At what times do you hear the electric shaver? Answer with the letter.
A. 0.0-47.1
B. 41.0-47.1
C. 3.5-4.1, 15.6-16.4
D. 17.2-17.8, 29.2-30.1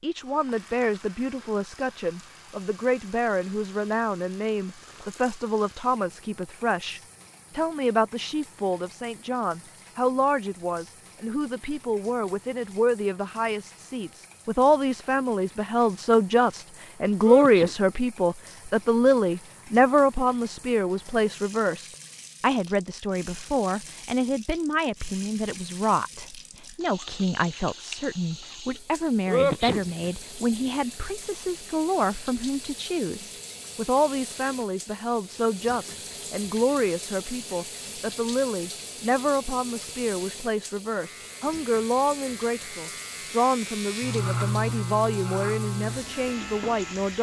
B.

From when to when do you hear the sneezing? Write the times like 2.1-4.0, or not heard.
17.2-17.8, 29.2-30.1.